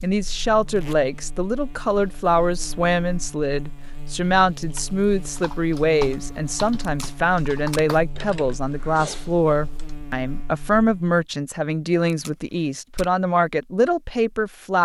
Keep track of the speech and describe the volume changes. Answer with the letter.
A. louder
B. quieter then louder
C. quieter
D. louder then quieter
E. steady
E.